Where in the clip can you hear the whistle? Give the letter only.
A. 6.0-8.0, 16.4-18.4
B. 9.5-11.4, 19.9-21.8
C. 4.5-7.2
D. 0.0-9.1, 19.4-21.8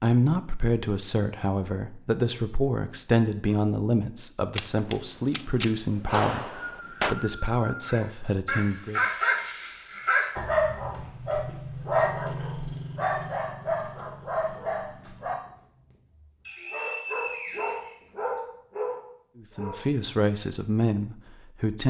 A.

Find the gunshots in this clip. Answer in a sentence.
The gunshots can be heard from 4.5 to 7.2 s.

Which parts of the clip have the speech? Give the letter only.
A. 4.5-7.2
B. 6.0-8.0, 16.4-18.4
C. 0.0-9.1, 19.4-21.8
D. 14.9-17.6
C.